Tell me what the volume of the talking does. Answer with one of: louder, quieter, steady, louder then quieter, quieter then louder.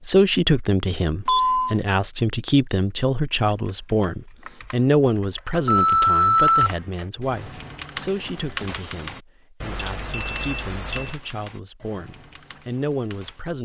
quieter.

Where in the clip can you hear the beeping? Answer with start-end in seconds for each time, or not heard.
1.2-1.8, 5.7-6.8, 9.6-11.2.